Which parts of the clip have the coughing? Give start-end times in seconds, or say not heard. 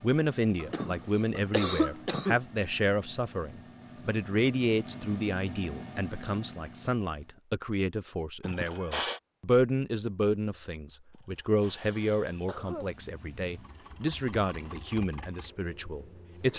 0.6-2.4, 8.4-9.2, 11.1-12.9.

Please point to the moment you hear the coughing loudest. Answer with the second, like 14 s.
2 s.